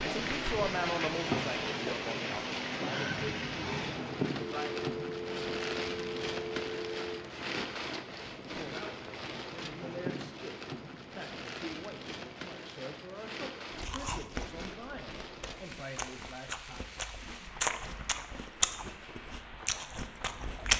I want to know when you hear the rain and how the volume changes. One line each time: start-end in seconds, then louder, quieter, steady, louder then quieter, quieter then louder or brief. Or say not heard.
0.0-20.7 quieter.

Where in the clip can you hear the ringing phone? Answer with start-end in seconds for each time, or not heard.
4.4-7.2.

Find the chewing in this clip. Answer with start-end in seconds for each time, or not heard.
13.7-20.7.